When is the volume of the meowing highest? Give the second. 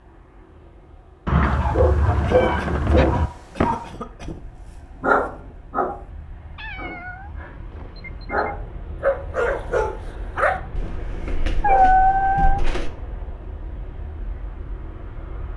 12 s.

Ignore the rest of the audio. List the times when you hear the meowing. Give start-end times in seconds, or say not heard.
1.2-3.3, 6.5-8.5, 11.6-12.7.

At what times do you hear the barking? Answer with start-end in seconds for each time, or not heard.
1.6-12.9.